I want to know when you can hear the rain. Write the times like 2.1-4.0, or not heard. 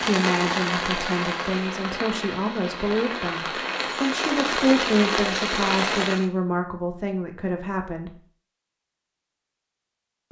0.0-6.2.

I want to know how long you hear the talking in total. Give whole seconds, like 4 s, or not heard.
8 s.